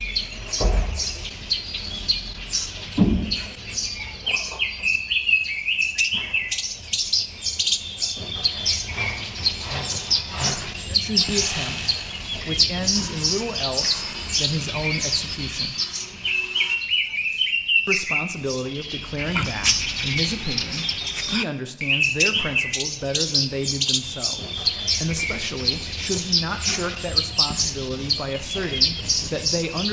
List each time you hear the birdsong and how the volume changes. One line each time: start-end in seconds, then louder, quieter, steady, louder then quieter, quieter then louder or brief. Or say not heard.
0.0-29.8 steady.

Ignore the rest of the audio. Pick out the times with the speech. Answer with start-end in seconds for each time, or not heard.
10.8-15.8, 17.9-29.8.